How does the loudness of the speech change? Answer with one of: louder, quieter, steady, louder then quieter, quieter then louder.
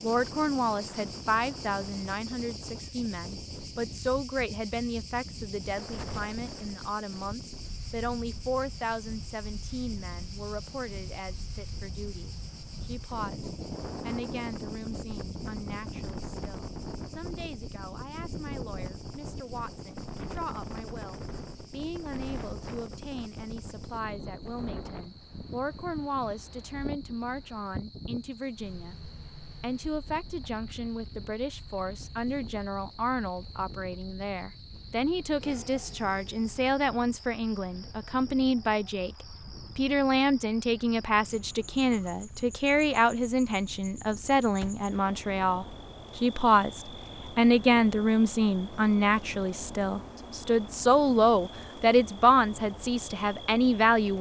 quieter then louder.